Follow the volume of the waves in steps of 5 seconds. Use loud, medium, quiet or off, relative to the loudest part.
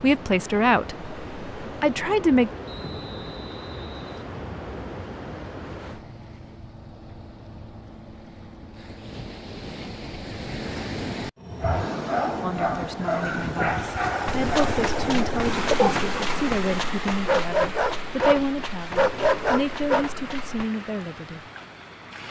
medium, medium, loud, loud, medium.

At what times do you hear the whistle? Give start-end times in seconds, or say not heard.
2.6-4.3.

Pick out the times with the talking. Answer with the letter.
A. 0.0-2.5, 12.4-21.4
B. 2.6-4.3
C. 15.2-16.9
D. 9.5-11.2
A.